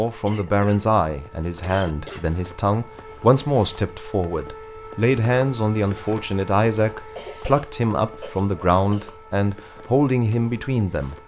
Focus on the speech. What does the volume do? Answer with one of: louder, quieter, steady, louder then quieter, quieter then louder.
steady.